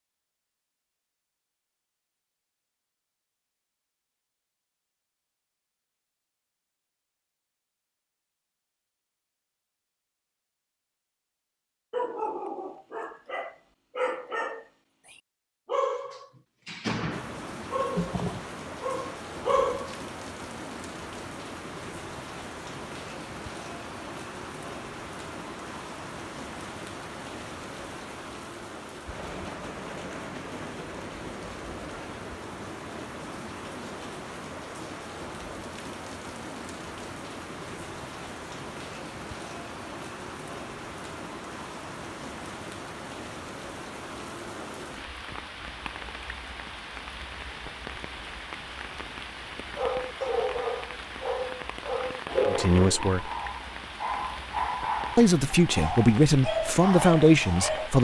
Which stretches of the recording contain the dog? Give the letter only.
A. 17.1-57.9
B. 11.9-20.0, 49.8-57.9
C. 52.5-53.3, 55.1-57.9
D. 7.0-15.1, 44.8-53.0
B.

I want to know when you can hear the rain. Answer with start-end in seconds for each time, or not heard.
17.1-57.9.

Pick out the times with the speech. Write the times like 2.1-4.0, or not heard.
52.5-53.3, 55.1-57.9.